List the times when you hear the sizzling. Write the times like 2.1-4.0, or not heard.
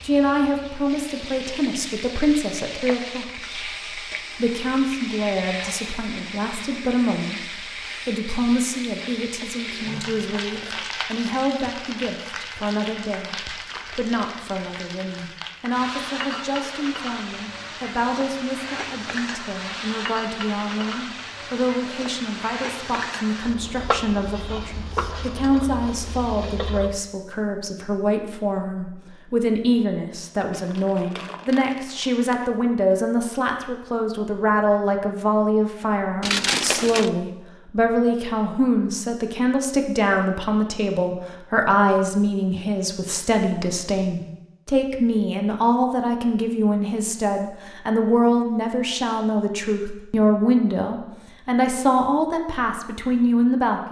0.0-27.0.